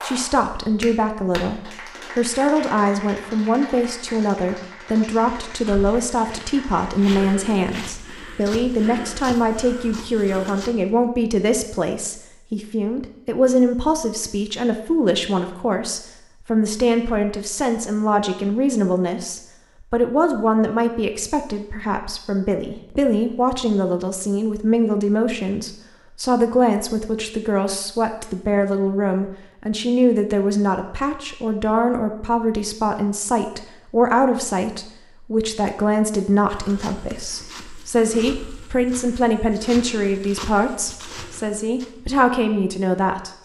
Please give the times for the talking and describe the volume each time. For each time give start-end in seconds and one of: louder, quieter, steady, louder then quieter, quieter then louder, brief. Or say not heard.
0.0-43.3 steady.